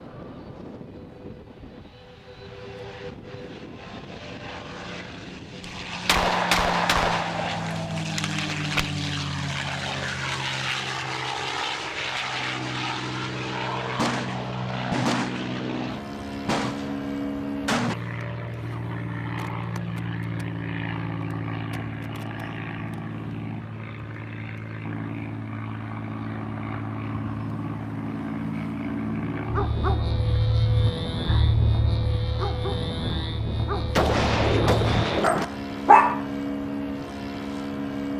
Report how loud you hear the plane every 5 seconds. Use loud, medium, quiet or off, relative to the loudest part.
medium, loud, loud, loud, loud, loud, loud, loud.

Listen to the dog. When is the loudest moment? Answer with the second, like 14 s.
36 s.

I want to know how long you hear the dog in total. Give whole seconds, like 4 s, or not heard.
7 s.